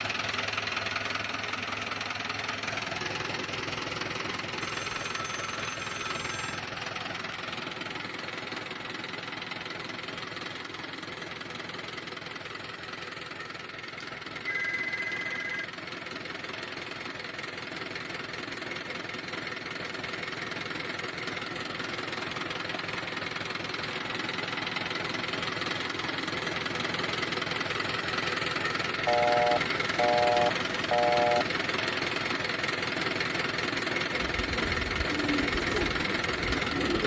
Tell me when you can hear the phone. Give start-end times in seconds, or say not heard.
4.6-6.6, 14.0-15.7, 29.1-31.6.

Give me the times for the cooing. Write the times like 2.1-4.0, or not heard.
34.3-37.0.